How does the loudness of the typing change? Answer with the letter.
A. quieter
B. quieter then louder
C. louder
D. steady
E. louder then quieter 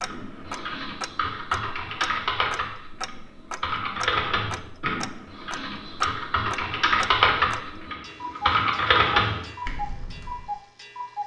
C.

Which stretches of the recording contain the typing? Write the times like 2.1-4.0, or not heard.
0.0-10.5.